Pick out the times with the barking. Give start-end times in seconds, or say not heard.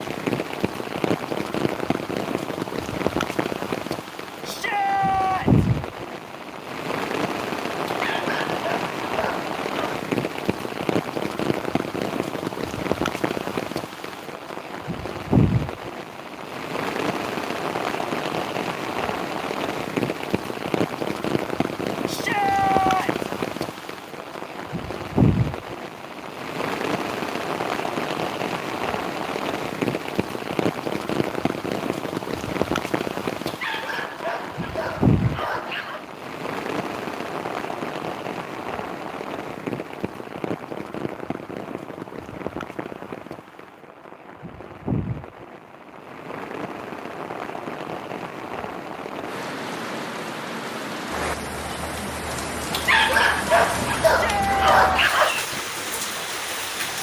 7.8-10.0, 33.5-36.0, 52.7-55.5.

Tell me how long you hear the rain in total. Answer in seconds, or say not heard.
57 s.